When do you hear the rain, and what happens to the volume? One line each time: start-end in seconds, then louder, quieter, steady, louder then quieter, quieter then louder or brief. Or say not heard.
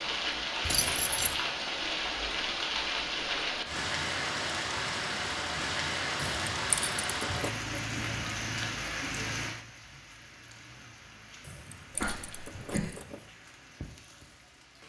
0.0-14.8 quieter.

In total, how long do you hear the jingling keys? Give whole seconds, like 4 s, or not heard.
4 s.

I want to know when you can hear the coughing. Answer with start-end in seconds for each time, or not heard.
11.9-12.9.